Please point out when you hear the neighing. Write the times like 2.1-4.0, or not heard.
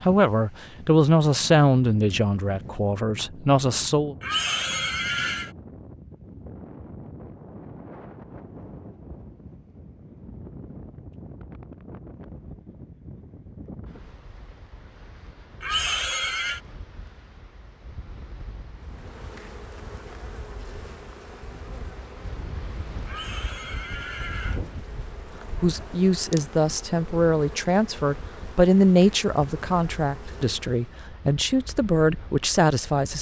4.2-5.5, 15.6-16.6, 23.1-24.6.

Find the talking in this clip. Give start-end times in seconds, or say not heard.
0.0-4.2, 25.6-33.1.